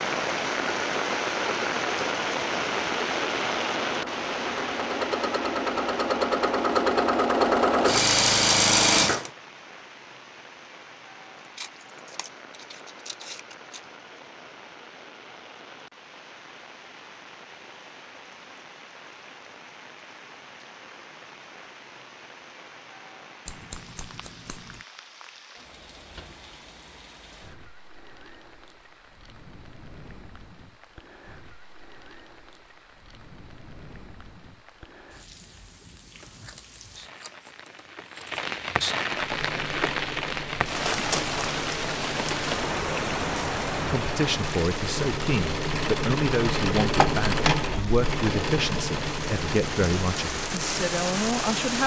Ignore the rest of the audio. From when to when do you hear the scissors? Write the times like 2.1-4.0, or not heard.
11.6-13.8, 23.4-24.9, 36.2-38.5.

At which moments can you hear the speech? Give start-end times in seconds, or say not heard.
43.9-51.8.